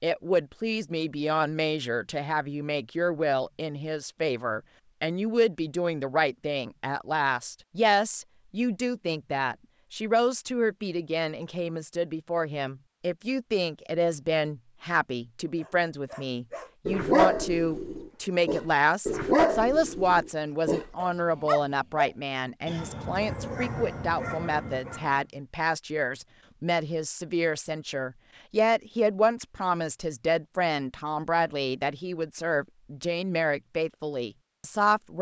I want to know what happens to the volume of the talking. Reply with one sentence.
The volume of the talking stays about the same.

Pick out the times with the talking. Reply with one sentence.
You can hear the talking from 0.0 to 35.1 s.